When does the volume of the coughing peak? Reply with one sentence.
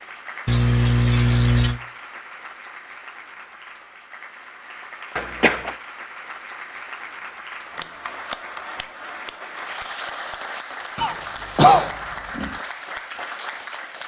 The loudest moment of the coughing is at 12 seconds.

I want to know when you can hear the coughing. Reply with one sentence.
You can hear the coughing from 0.5 to 1.8 s, from 5.2 to 5.8 s and from 10.9 to 12.6 s.